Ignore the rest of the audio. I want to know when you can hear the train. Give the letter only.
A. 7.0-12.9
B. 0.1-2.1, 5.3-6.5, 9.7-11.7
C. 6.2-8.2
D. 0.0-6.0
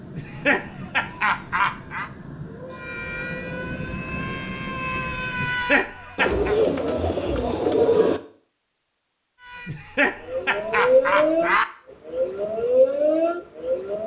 D.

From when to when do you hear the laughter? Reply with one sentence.
The laughter can be heard from 0.1 to 2.1 s, from 5.3 to 6.5 s and from 9.7 to 11.7 s.